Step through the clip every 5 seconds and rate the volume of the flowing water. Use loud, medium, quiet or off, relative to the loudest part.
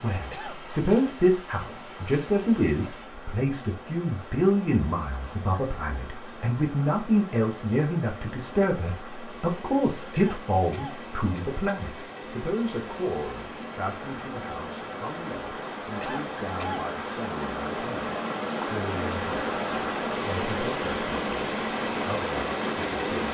quiet, quiet, medium, loud, loud.